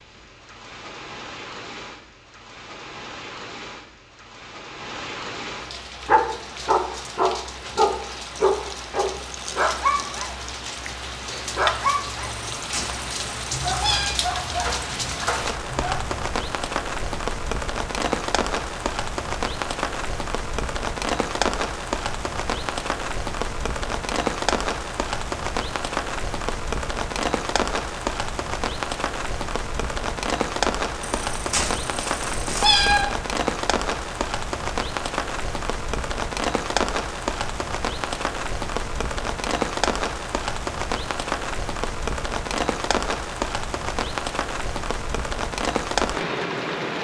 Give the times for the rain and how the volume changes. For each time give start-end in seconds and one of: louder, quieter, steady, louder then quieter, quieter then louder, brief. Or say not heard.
0.0-46.9 louder.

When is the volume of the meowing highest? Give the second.
33 s.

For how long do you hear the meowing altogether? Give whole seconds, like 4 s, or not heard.
4 s.